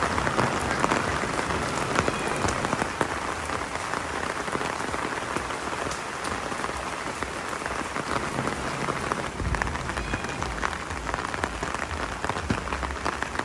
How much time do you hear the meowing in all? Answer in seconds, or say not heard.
5 s.